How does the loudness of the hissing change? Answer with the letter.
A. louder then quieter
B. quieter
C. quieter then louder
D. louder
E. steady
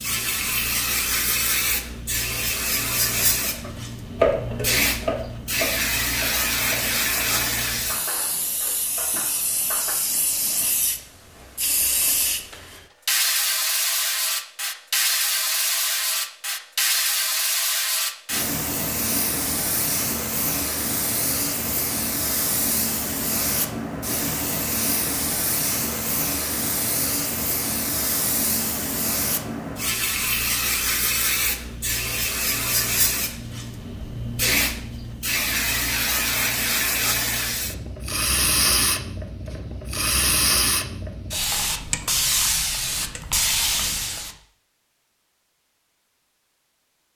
E.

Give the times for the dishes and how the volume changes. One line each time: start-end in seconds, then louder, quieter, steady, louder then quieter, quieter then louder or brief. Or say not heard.
3.4-9.9 quieter.